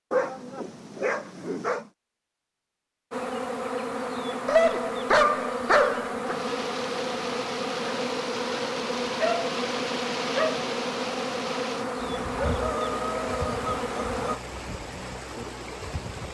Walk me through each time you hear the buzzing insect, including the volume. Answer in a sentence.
The buzzing insect can be heard from 3.1 to 14.4 s, at a steady volume.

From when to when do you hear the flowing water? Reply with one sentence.
The flowing water can be heard from 6.2 to 16.2 s.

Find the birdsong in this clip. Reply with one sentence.
The birdsong can't be heard in this clip.